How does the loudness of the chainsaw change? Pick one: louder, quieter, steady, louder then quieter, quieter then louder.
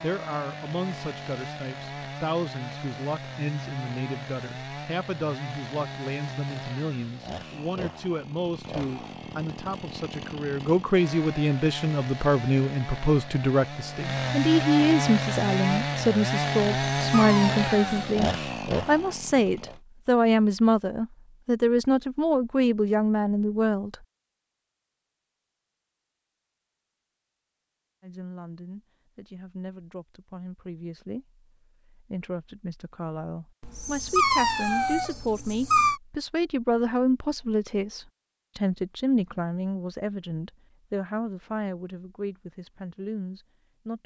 louder.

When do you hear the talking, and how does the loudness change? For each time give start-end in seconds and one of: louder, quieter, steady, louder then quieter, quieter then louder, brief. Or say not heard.
0.0-23.9 louder
28.0-44.0 louder then quieter.